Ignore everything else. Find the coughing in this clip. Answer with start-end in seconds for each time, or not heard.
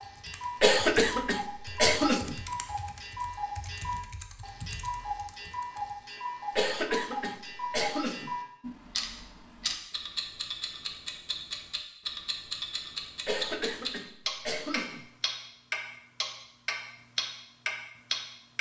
0.6-2.4, 6.5-8.3, 13.2-15.1.